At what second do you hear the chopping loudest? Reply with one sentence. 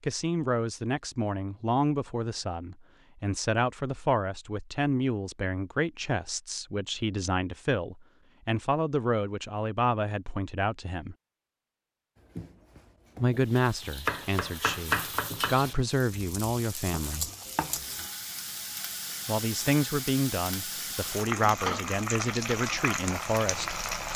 The volume of the chopping peaks at 15 seconds.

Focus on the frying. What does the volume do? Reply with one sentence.
The loudness of the frying goes up.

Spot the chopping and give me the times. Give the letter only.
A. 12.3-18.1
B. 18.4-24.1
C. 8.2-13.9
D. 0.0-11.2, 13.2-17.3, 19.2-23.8
A.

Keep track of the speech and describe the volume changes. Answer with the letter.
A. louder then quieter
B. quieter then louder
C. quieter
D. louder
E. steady
E.